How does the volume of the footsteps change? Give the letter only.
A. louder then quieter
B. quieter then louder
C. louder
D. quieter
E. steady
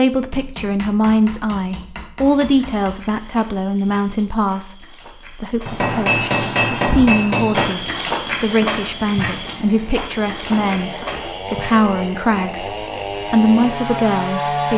A.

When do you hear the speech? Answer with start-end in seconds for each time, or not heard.
0.0-14.7.